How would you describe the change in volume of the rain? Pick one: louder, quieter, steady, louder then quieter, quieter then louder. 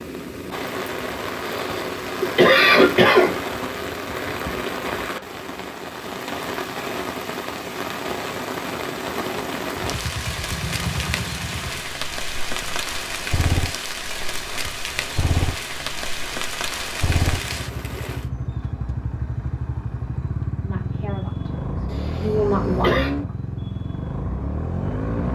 steady.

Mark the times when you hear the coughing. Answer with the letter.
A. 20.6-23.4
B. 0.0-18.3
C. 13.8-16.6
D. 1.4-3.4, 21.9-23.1
D.